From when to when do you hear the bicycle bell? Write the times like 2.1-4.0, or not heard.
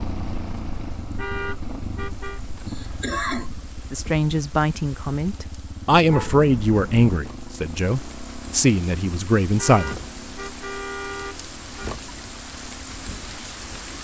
not heard.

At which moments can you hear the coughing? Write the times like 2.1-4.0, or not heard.
2.6-3.6.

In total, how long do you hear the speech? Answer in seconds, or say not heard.
6 s.